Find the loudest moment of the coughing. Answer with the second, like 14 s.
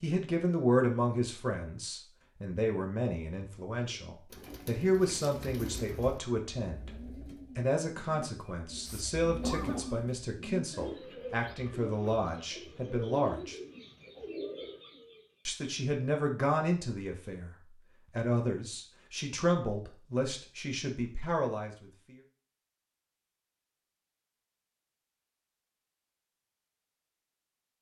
10 s.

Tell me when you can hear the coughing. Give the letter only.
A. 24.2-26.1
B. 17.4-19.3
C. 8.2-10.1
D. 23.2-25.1
C.